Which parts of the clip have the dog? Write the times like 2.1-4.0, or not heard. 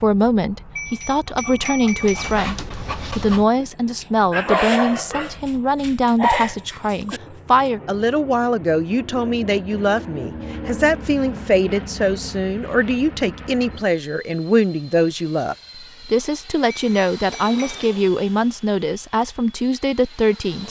1.9-7.3.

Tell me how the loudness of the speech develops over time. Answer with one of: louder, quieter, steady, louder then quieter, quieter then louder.
steady.